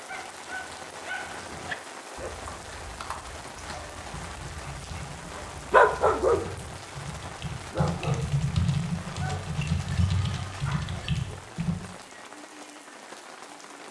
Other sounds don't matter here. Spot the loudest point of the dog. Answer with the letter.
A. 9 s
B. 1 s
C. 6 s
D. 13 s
C.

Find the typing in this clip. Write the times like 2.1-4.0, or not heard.
2.5-11.8.